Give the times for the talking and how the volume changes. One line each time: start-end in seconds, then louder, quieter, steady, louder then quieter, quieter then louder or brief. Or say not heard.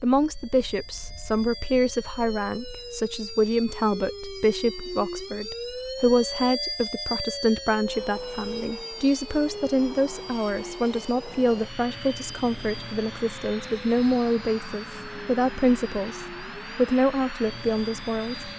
0.0-18.5 steady.